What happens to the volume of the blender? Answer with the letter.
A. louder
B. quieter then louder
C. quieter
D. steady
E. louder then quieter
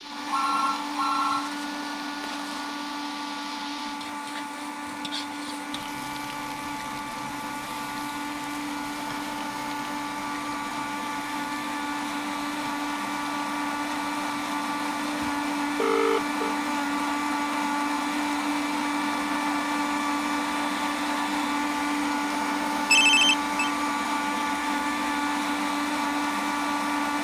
A.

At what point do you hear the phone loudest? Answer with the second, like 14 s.
23 s.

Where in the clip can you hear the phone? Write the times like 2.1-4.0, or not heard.
0.2-2.7, 15.2-16.6, 22.9-23.7.